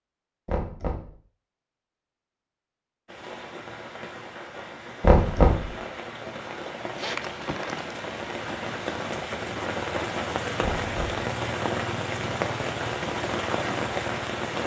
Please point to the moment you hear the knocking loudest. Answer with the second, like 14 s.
5 s.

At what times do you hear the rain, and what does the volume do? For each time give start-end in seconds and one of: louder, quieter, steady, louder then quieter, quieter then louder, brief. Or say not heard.
3.0-14.6 louder.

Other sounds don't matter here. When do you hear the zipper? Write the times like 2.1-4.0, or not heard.
7.0-7.9.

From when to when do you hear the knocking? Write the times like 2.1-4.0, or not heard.
0.5-1.1, 5.0-5.7, 10.6-11.2.